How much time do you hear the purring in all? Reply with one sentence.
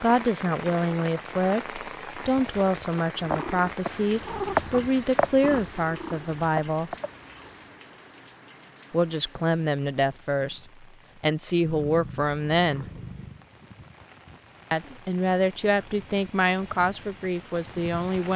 You can hear the purring for 6 seconds altogether.